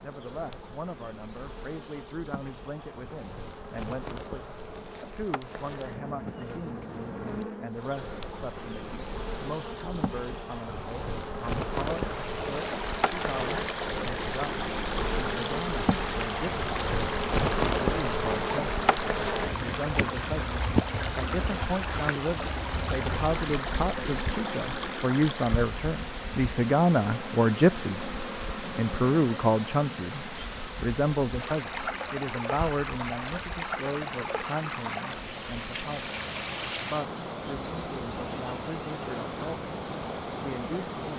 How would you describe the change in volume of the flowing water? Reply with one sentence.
The volume of the flowing water stays about the same.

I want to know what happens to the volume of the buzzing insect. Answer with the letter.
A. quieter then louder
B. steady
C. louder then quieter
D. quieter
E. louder
C.